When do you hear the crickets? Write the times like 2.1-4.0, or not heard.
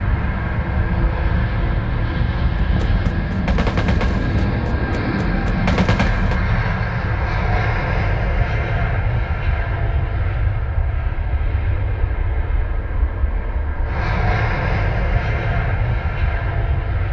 not heard.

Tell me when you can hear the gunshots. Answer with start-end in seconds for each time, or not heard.
2.5-6.4.